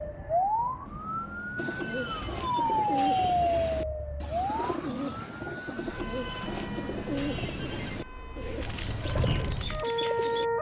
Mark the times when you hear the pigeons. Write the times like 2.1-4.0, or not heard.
1.6-10.5.